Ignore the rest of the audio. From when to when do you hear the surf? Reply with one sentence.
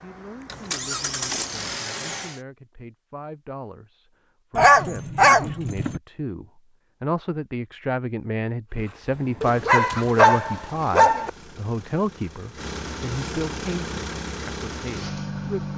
The surf can't be heard in this clip.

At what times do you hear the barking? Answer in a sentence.
The barking can be heard from 4.5 to 6.0 s and from 9.4 to 11.3 s.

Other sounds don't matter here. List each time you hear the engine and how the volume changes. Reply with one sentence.
The engine can be heard briefly from 0.0 to 2.4 s; and from 8.7 to 15.7 s, getting louder.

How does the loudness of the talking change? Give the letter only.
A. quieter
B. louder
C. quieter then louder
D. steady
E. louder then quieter
E.